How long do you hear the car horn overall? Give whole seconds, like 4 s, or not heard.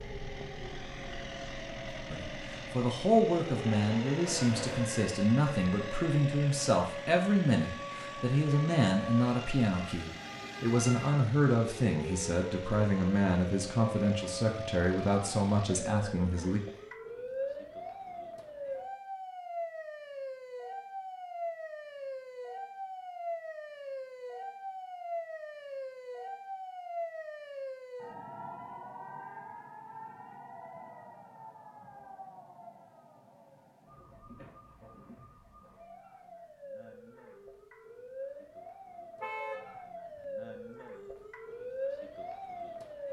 2 s.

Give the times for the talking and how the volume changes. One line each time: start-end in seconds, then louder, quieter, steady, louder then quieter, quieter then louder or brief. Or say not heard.
2.1-16.6 steady.